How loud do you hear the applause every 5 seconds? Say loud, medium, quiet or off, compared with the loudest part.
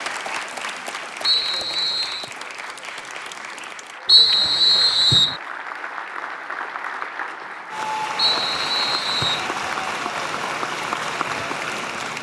medium, loud, loud.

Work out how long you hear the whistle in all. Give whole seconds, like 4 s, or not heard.
4 s.